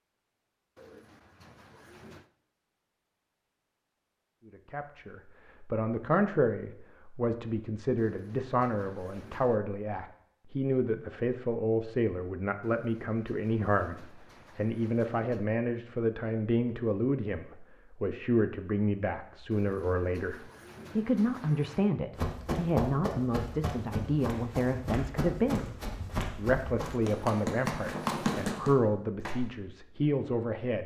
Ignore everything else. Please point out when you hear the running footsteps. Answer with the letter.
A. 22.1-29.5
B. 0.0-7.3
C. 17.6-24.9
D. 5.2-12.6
A.